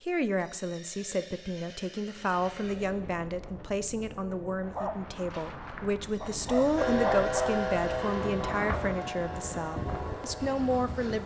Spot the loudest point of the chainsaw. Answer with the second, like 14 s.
7 s.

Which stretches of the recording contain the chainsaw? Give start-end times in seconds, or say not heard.
6.8-11.2.